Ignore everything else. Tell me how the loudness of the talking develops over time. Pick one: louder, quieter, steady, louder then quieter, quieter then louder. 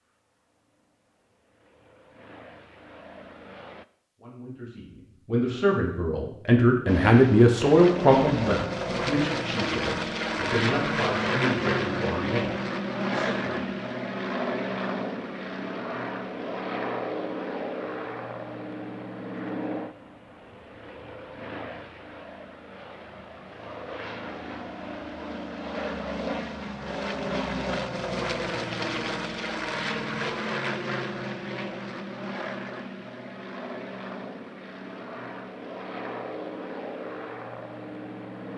louder then quieter.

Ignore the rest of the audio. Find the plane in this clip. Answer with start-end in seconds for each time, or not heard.
0.1-3.9, 6.8-38.5.